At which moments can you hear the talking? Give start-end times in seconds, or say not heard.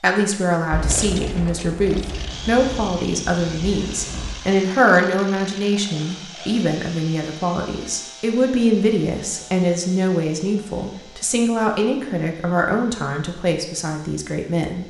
0.0-14.8.